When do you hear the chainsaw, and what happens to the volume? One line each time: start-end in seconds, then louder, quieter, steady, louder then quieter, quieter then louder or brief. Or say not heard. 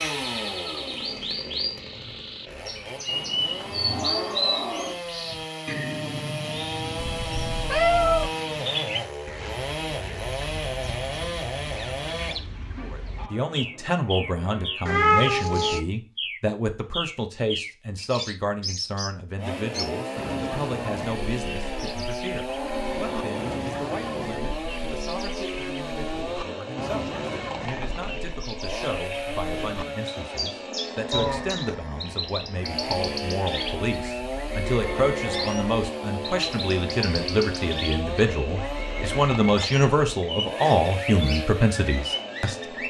0.0-12.4 louder
19.4-42.8 steady.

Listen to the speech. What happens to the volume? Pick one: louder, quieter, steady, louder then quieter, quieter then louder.
quieter then louder.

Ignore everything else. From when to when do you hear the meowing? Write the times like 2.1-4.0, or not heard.
7.0-8.3, 14.8-15.8, 31.1-31.6.